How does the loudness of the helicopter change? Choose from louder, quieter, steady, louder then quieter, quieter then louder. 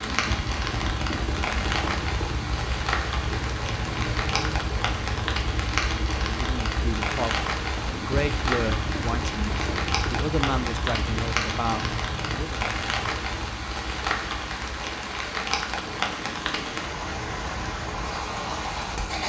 quieter.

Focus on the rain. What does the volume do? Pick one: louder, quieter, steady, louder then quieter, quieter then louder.
steady.